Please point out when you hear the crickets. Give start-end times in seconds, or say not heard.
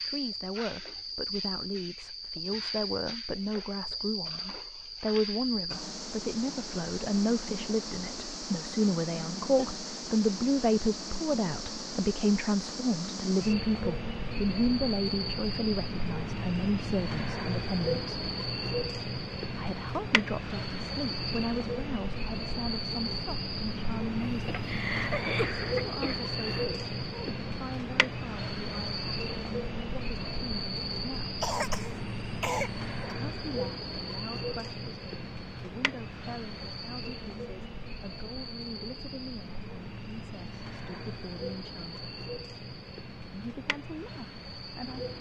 0.0-45.1.